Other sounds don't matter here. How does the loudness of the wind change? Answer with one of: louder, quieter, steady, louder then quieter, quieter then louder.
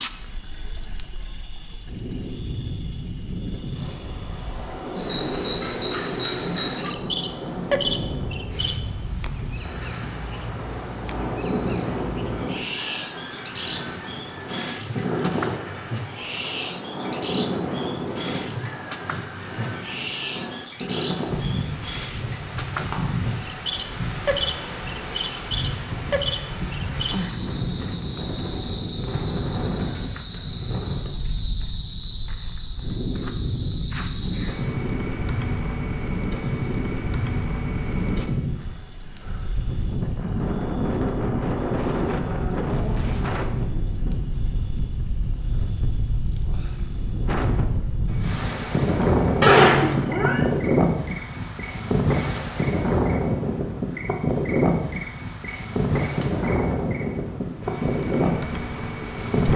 louder.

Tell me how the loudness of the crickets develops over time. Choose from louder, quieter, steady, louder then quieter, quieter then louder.
quieter.